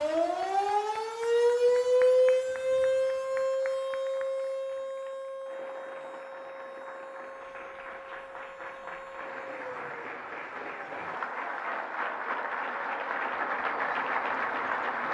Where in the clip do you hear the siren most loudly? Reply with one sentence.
The volume of the siren peaks at 2 seconds.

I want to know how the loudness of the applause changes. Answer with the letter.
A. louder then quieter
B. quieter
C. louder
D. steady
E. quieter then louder
C.